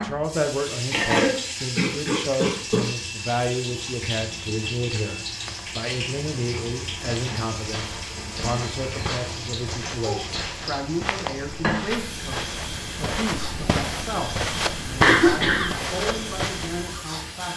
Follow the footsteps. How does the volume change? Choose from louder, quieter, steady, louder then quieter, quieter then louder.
louder.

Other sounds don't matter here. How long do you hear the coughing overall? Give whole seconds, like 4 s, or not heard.
3 s.